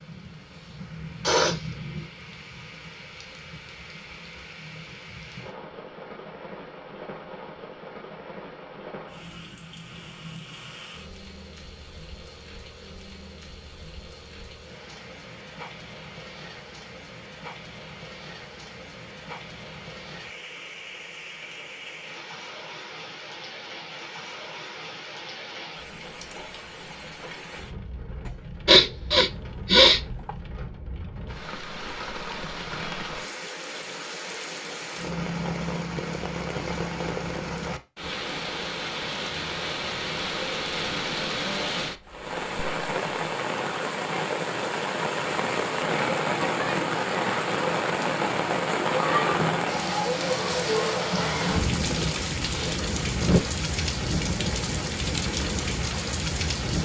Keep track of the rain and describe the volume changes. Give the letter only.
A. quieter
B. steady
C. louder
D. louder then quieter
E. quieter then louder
C.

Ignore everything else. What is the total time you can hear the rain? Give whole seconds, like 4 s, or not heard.
57 s.